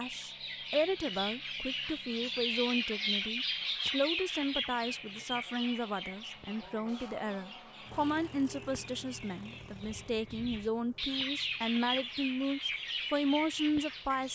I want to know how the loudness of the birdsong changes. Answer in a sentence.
The loudness of the birdsong goes down, then up.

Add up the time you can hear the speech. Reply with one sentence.
You can hear the speech for 14 seconds altogether.